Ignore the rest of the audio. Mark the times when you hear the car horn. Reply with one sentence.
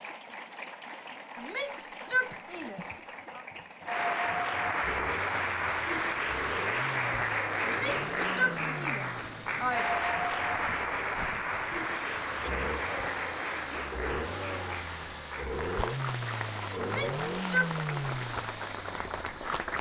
You can't hear the car horn here.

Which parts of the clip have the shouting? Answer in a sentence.
The shouting can be heard from 1.4 to 3.5 s, from 7.7 to 9.8 s and from 16.8 to 18.0 s.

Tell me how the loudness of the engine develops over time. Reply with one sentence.
The loudness of the engine goes up.